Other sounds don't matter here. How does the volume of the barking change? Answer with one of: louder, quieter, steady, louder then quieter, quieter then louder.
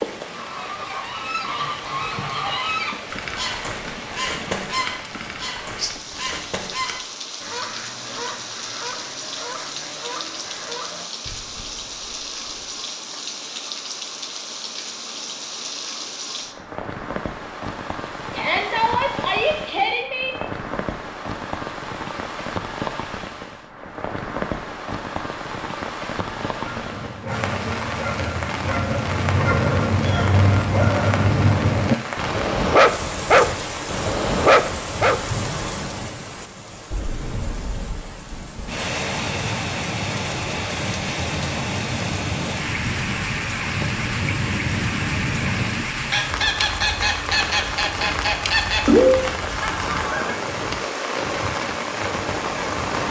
louder.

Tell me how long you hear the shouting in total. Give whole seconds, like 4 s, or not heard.
2 s.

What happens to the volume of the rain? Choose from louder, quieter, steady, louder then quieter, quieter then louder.
louder.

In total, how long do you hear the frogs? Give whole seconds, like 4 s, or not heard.
not heard.